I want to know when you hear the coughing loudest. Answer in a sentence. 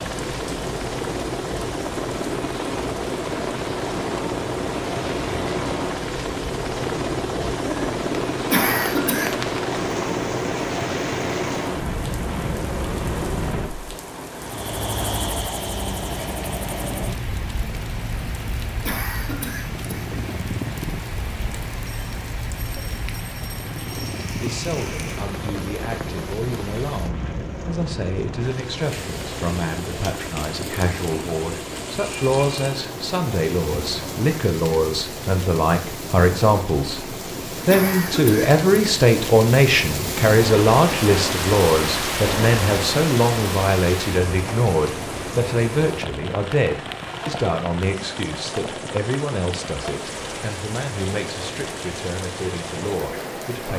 The loudest moment of the coughing is at 9 seconds.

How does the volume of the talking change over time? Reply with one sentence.
The volume of the talking goes up, then down.